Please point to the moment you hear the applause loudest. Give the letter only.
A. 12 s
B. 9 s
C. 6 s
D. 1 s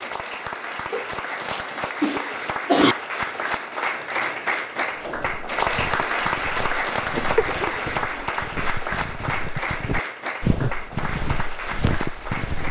C.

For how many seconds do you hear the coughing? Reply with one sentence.
You can hear the coughing for 3 seconds altogether.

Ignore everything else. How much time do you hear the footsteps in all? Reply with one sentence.
The footsteps can be heard for 8 seconds in total.